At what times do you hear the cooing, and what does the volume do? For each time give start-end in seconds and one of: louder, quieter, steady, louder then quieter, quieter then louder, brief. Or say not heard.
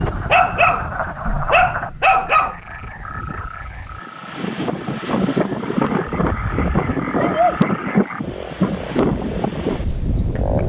not heard.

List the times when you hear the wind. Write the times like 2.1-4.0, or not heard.
0.0-10.6.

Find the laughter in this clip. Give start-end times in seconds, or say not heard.
not heard.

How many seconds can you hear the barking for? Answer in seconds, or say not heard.
4 s.